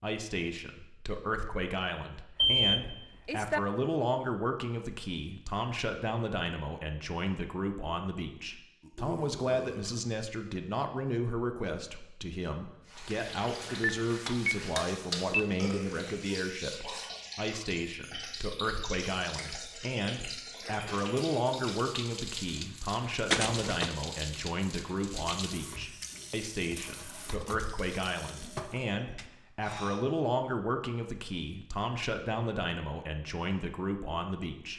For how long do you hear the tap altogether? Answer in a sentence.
You can hear the tap for 16 seconds altogether.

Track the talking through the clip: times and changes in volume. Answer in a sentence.
The talking can be heard from 0.0 to 34.7 s, at a steady volume.